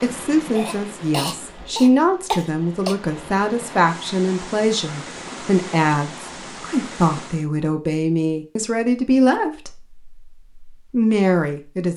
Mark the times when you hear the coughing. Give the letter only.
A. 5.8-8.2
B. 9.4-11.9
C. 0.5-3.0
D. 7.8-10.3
C.